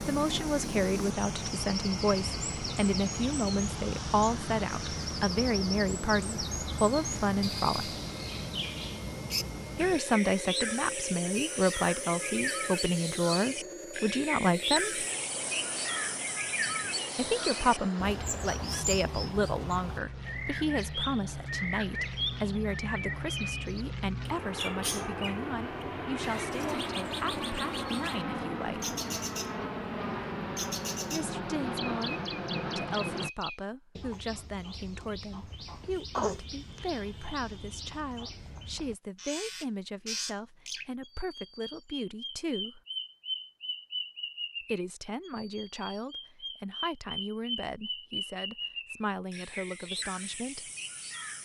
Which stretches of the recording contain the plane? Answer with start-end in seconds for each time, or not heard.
0.0-33.3.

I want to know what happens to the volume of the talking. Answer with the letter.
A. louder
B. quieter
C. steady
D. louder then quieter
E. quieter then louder
B.